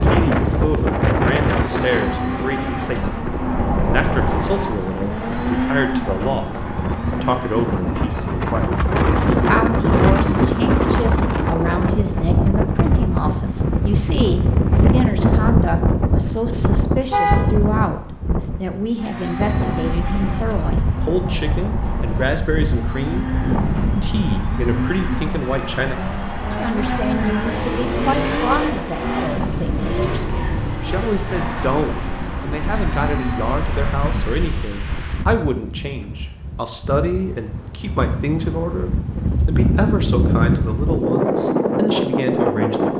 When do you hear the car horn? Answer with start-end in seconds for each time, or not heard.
17.1-17.9.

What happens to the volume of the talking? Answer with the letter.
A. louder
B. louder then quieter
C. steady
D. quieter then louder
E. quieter
C.